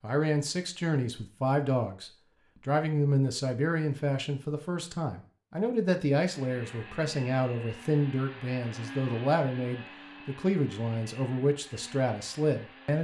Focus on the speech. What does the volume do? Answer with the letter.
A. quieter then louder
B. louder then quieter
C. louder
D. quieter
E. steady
E.